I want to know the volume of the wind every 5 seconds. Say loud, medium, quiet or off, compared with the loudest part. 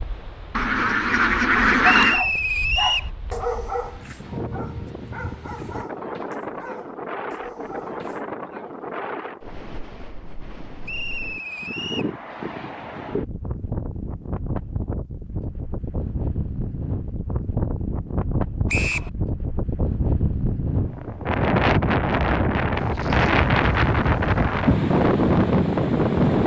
quiet, quiet, quiet, medium, loud, loud.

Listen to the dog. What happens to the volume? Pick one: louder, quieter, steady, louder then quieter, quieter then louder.
quieter.